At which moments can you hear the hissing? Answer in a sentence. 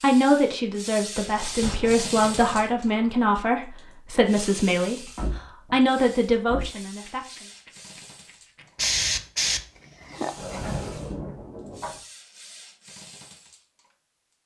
The hissing can be heard from 8.8 to 11.0 s.